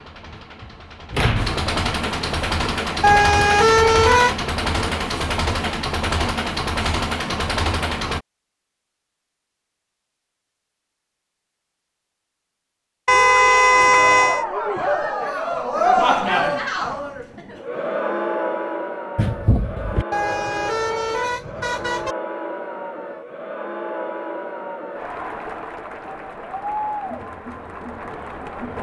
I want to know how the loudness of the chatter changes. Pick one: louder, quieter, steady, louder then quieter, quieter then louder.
quieter.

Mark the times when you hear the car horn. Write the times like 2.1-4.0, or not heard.
3.0-4.3, 13.1-14.4, 20.1-22.1.